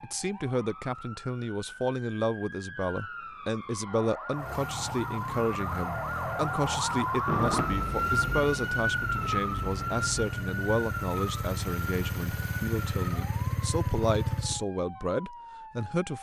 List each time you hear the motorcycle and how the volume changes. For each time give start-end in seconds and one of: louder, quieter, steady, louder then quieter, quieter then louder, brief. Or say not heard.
4.3-14.7 louder.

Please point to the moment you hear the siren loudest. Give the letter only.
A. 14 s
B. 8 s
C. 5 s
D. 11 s
B.